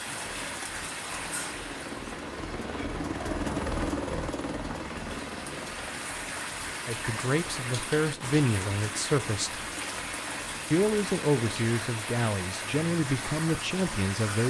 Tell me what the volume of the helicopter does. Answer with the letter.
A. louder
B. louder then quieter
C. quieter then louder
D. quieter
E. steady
B.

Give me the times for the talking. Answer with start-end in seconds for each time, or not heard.
6.8-9.6, 10.7-14.4.